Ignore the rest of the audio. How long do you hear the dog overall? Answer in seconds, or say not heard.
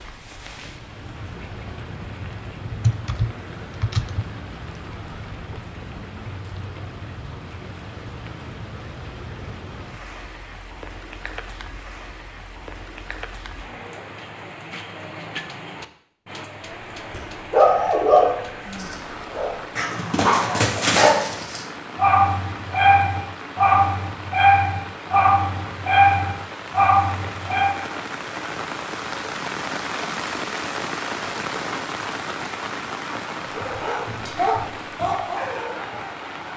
14 s.